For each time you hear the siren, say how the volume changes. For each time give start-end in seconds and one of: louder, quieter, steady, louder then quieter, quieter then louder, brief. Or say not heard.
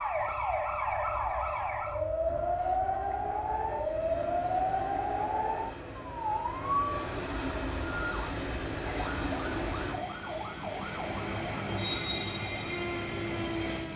0.0-13.9 quieter.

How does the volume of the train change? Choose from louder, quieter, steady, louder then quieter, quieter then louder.
louder.